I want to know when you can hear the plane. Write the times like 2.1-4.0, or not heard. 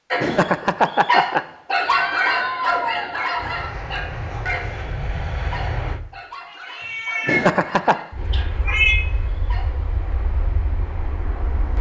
3.4-6.0, 8.1-11.7.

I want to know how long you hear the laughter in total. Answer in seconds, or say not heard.
2 s.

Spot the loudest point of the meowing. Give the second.
9 s.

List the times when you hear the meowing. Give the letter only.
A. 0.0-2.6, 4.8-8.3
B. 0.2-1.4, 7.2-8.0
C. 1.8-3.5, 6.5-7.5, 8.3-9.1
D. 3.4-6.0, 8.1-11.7
C.